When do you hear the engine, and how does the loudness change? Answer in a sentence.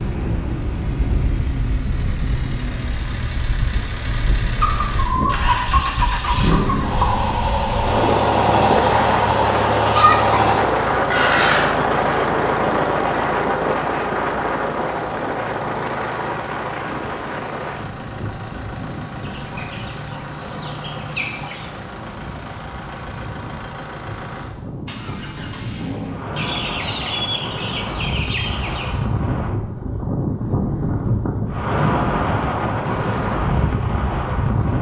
The engine can be heard from 0.0 to 26.4 s, getting louder then quieter.